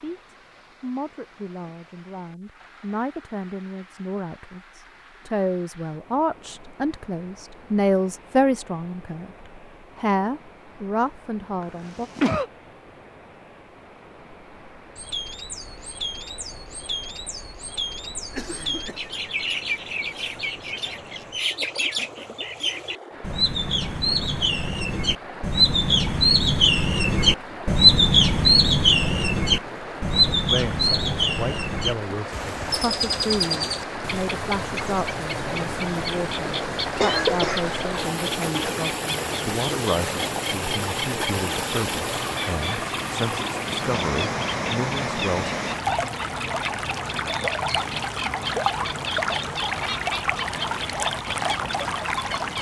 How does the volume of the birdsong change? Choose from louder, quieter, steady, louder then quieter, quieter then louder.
louder then quieter.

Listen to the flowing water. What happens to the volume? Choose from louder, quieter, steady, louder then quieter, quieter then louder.
louder.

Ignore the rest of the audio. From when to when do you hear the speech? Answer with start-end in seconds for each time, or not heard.
0.0-12.1, 30.5-45.5.